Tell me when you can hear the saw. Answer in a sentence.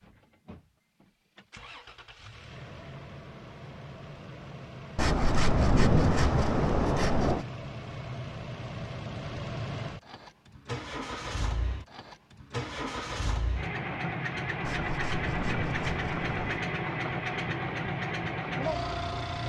You can hear the saw from 5.0 to 7.5 s and from 14.6 to 16.6 s.